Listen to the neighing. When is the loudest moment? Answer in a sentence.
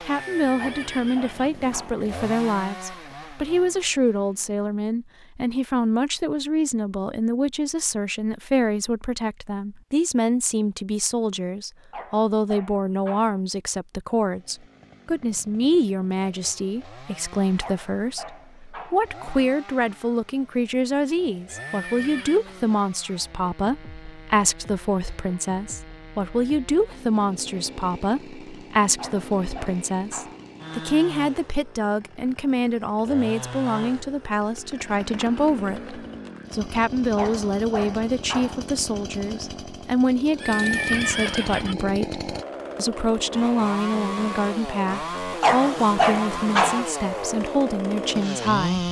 The loudest moment of the neighing is at 41 seconds.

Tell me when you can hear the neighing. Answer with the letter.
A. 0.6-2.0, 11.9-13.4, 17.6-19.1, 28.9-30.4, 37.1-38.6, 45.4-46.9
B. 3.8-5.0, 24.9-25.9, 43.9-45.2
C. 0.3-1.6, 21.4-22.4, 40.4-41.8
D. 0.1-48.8
C.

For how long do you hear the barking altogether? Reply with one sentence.
You can hear the barking for 9 seconds altogether.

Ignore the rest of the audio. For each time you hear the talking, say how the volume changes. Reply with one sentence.
You can hear the talking from 0.1 to 48.8 s, at a steady volume.